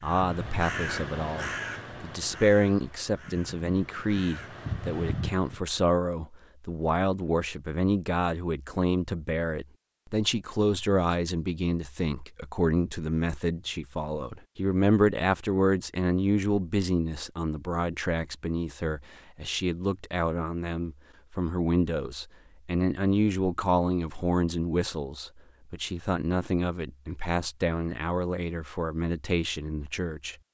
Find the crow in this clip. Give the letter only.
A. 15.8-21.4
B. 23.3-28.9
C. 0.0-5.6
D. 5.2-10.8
C.